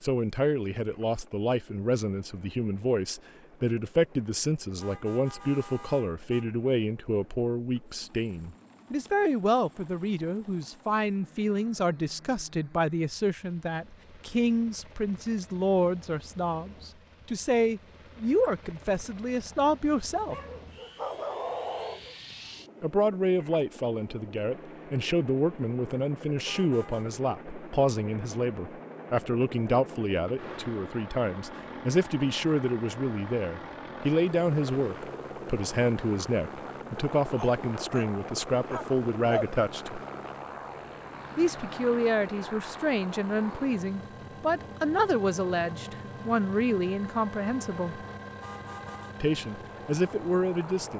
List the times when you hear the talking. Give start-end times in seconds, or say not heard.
0.0-20.4, 22.8-40.0, 41.4-48.0, 49.2-50.9.